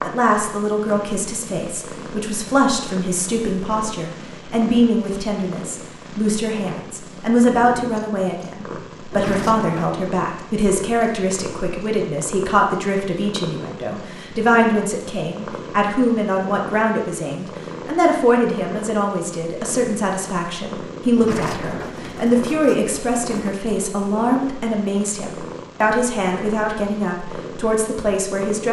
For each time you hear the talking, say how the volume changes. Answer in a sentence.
The talking can be heard from 0.0 to 28.6 s, at a steady volume.